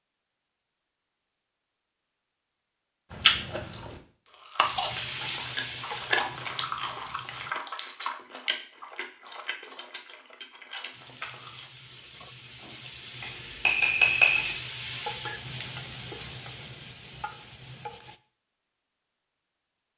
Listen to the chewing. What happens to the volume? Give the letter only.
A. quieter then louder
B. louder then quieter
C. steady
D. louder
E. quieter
E.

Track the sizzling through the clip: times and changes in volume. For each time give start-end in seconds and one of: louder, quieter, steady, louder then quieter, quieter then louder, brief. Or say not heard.
4.6-7.5 brief
10.9-18.2 louder then quieter.